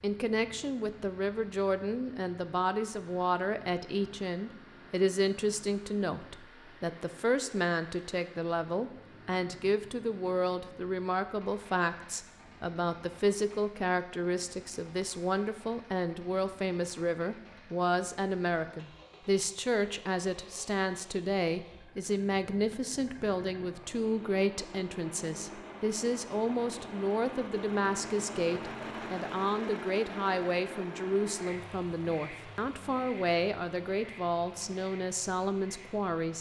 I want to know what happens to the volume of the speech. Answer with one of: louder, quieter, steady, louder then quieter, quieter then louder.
steady.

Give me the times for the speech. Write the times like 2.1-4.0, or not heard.
0.0-36.3.